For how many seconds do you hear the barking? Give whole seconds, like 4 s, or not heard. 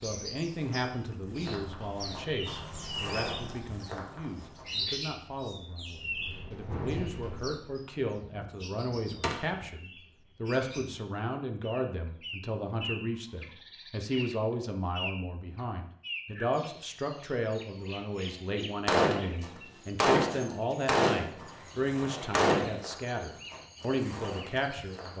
not heard.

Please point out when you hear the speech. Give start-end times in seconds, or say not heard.
0.0-25.1.